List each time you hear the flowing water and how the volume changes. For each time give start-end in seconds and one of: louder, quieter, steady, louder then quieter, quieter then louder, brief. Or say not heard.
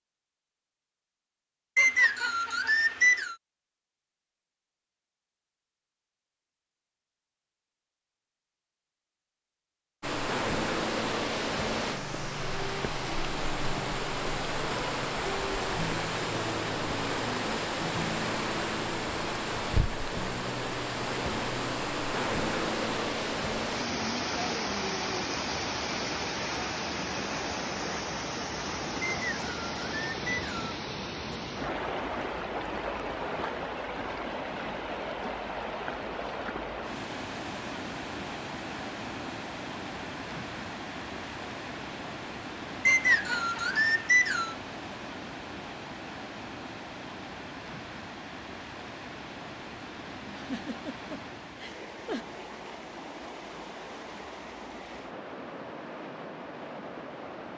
10.0-57.5 quieter.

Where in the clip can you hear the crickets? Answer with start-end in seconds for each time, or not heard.
not heard.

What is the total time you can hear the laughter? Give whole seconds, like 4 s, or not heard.
2 s.